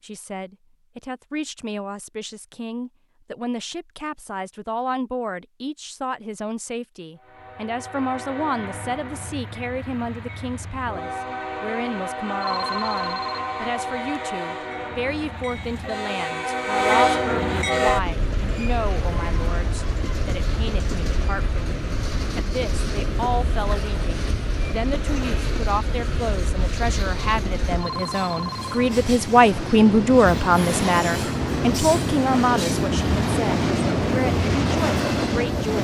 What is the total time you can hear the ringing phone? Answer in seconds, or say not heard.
3 s.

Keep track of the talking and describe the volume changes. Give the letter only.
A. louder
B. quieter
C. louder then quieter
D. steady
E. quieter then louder
A.